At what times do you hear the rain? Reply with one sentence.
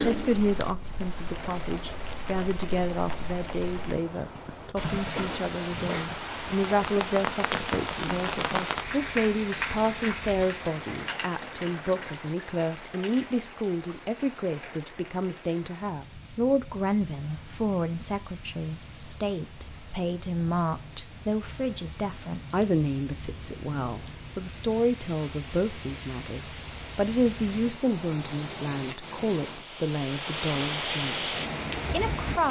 The rain can be heard from 0.0 to 32.4 s.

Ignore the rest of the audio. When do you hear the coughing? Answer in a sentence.
You can hear the coughing from 5.2 to 6.1 s.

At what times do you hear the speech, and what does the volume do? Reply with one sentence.
You can hear the speech from 0.0 to 32.4 s, at a steady volume.